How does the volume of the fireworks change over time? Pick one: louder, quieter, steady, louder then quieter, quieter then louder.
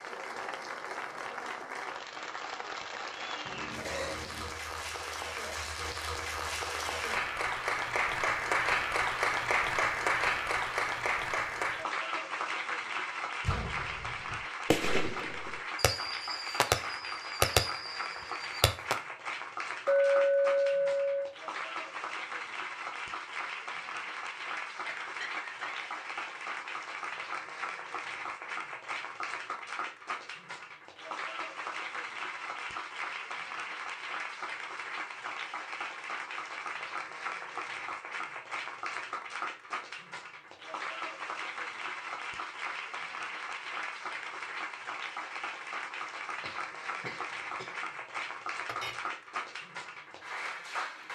louder then quieter.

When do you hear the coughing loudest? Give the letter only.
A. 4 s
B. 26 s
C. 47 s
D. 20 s
A.